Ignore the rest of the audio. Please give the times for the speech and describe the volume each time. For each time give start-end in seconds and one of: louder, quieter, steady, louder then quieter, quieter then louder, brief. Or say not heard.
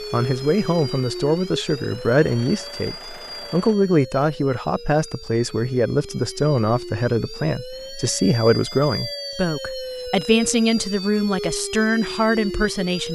0.0-13.1 steady.